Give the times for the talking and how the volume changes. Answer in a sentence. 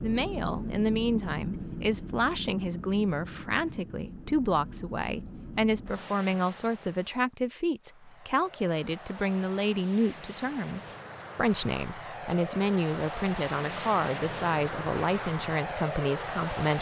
You can hear the talking from 0.0 to 16.7 s, at a steady volume.